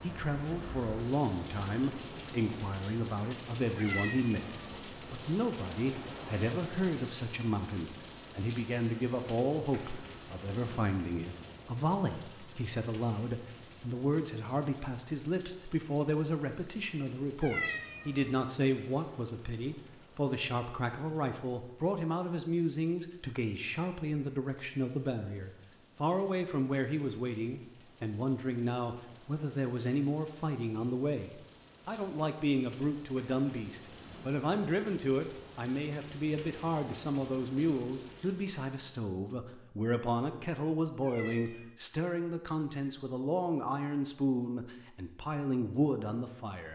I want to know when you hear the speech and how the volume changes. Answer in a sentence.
You can hear the speech from 0.0 to 46.6 s, at a steady volume.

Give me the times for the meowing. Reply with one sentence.
You can hear the meowing from 3.8 to 4.8 s, from 17.4 to 18.4 s and from 41.0 to 41.7 s.